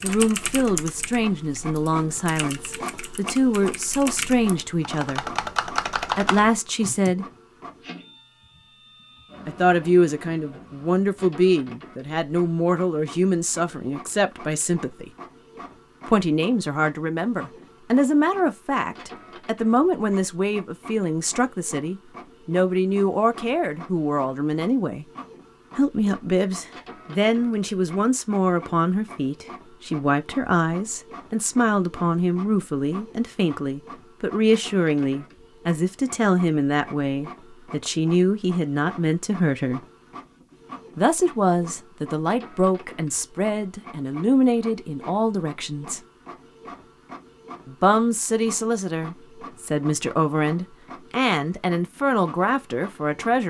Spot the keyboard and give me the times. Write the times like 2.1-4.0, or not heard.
0.0-7.2.